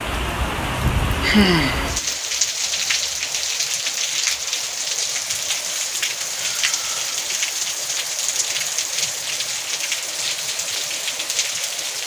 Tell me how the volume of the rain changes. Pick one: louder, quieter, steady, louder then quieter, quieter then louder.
steady.